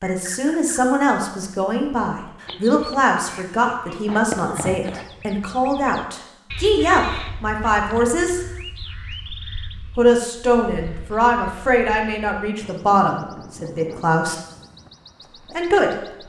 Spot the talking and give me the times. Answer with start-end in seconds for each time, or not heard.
0.0-8.4, 9.9-14.3, 15.5-15.9.